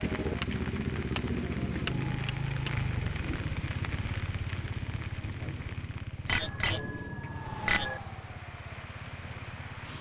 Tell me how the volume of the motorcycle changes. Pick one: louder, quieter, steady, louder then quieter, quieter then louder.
quieter.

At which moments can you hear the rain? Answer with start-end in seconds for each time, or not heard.
0.0-9.9.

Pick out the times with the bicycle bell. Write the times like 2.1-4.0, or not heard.
0.4-3.1, 6.2-8.0.